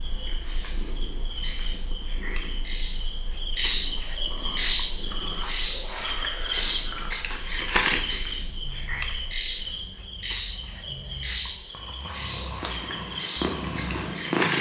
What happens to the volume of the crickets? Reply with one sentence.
The loudness of the crickets goes up, then down.